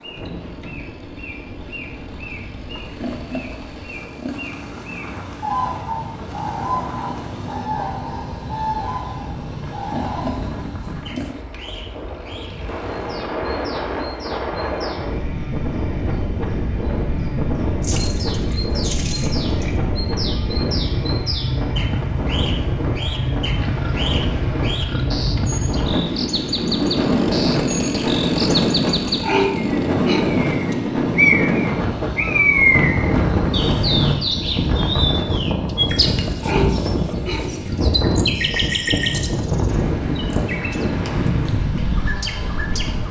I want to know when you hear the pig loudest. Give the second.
29 s.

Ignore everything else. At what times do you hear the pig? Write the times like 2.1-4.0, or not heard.
2.8-4.5, 9.7-11.4, 17.8-19.8, 23.6-25.1, 28.9-30.8, 36.0-37.5.